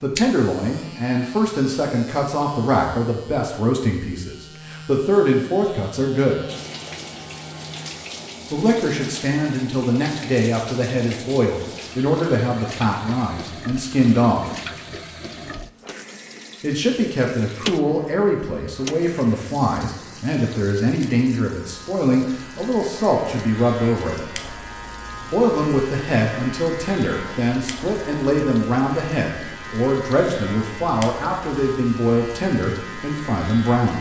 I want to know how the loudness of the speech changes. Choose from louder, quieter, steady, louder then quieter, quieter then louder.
steady.